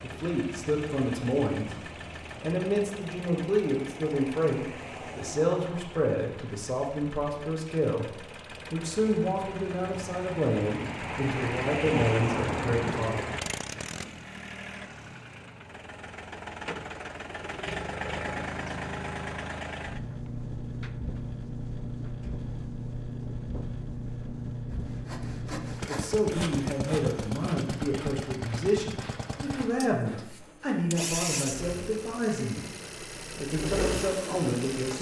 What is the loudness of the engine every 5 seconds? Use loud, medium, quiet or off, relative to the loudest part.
medium, medium, loud, loud, loud, loud, loud.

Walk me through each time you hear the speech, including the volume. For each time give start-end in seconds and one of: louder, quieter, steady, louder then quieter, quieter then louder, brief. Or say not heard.
0.0-13.2 steady
25.2-32.7 steady
33.4-34.9 brief.